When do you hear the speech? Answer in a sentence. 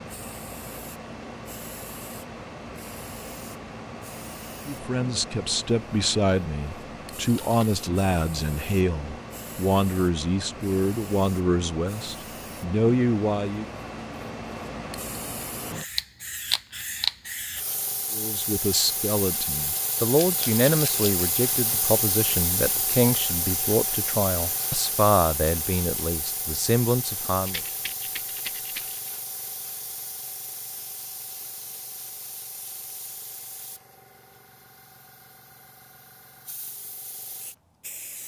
You can hear the speech from 4.7 to 13.7 s and from 18.1 to 27.6 s.